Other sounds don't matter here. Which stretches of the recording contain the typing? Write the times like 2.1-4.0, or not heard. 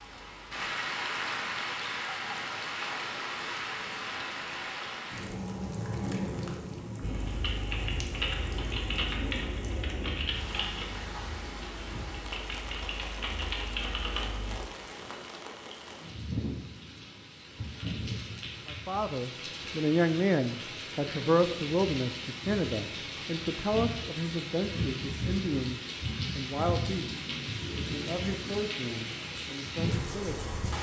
7.0-14.6.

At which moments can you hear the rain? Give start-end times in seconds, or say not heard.
0.0-30.7.